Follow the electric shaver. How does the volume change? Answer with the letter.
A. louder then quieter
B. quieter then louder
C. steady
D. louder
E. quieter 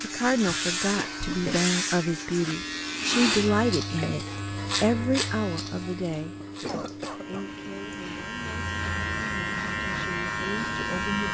B.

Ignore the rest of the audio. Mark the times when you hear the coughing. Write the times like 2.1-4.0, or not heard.
0.5-1.6, 6.4-7.5.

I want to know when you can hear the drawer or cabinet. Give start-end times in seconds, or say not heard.
not heard.